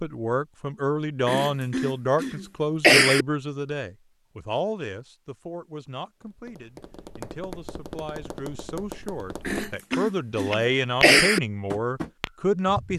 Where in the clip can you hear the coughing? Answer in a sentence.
The coughing can be heard from 1.2 to 3.2 s and from 9.4 to 11.4 s.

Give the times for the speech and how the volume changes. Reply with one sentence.
The speech can be heard from 0.0 to 12.9 s, getting quieter then louder.